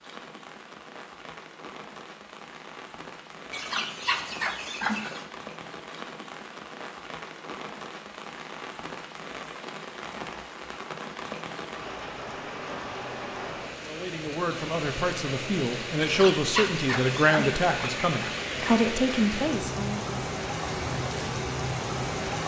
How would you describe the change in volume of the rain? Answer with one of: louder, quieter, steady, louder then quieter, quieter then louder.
louder.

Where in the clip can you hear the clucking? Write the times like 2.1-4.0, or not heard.
3.5-5.2, 16.0-18.8.